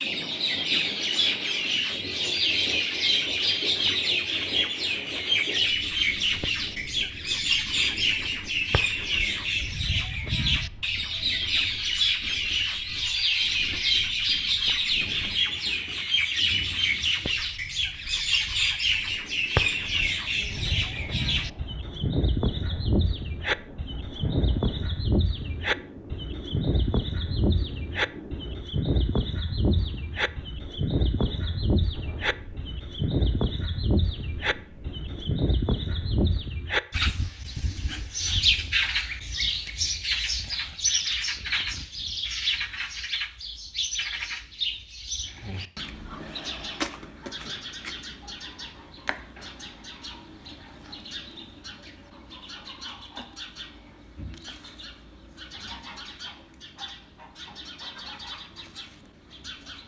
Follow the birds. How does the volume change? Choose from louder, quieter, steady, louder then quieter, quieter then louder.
quieter.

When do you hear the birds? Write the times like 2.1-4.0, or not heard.
0.0-59.8.